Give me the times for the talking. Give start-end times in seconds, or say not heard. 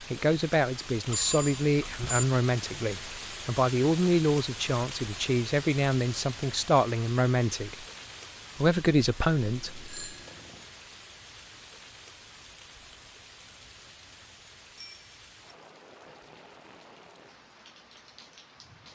0.1-7.8, 8.6-9.8.